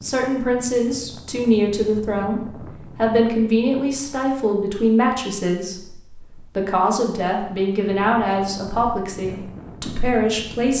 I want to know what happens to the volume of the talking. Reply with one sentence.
The volume of the talking stays about the same.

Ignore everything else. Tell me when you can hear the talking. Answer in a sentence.
The talking can be heard from 0.0 to 10.7 s.